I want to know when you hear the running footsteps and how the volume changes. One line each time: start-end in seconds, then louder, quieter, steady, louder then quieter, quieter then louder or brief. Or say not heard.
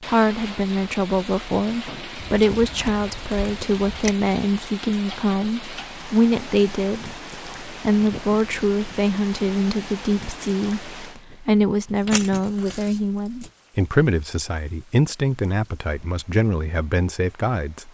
not heard.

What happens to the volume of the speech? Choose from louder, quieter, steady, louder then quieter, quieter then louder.
steady.